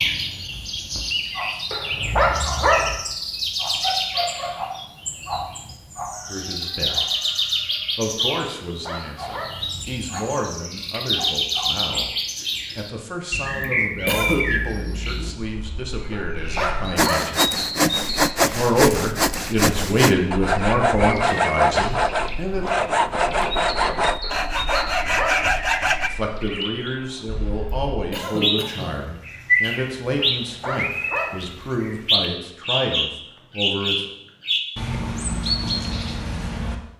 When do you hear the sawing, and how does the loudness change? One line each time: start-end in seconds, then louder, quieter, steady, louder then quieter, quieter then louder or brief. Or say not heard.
16.9-26.1 steady.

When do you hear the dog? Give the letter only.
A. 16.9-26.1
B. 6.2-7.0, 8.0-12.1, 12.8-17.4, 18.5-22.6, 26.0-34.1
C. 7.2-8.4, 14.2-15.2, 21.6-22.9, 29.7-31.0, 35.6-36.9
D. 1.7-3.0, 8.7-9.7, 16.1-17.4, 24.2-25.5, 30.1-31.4
D.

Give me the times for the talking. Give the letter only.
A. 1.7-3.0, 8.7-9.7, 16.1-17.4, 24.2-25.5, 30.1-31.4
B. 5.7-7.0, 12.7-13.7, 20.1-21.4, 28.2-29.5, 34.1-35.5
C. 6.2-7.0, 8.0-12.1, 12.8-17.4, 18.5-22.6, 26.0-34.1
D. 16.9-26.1
C.